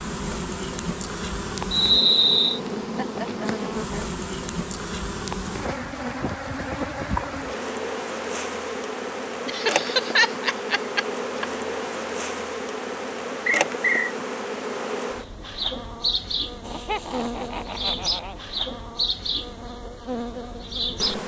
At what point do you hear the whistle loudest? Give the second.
2 s.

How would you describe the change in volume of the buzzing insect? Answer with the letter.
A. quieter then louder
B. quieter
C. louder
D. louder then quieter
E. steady
E.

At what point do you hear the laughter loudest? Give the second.
10 s.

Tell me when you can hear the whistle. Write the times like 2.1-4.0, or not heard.
1.7-2.6, 13.4-14.2.